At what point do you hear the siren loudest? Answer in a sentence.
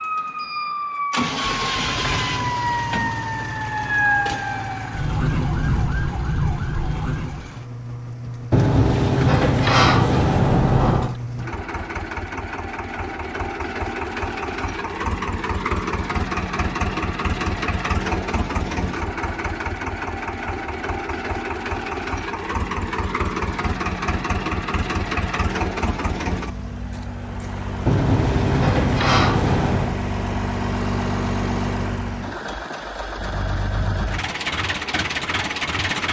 The loudest moment of the siren is at 4 seconds.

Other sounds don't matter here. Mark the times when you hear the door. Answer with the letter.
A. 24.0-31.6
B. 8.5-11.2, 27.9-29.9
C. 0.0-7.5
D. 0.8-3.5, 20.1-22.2
B.